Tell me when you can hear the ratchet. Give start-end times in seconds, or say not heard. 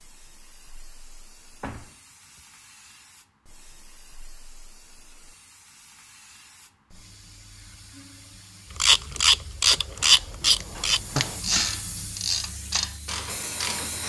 8.8-14.0.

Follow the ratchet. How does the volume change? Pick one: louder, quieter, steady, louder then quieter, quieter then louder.
quieter.